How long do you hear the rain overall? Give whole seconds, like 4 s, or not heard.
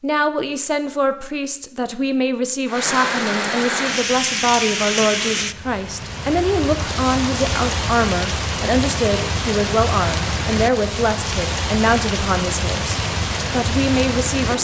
12 s.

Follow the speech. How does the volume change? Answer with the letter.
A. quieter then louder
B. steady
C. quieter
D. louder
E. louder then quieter
B.